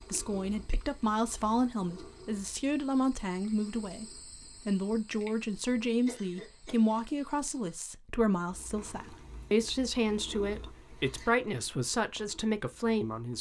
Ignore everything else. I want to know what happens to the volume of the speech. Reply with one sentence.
The volume of the speech stays about the same.